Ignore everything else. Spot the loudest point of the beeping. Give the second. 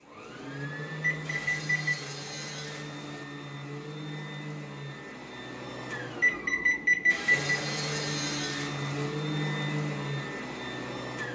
7 s.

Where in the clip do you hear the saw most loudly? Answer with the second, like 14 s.
8 s.